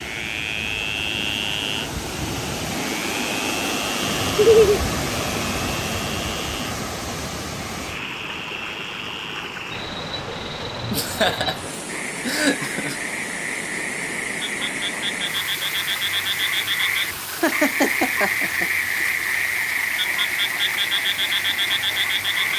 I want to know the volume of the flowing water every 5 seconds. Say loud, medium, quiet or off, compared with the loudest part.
loud, loud, medium, medium, medium.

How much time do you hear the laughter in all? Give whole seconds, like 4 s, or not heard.
4 s.